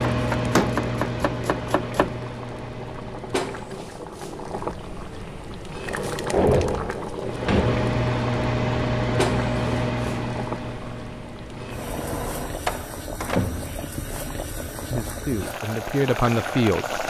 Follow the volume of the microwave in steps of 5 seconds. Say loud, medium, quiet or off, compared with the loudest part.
medium, loud, medium, off.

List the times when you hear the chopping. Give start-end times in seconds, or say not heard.
0.1-2.2.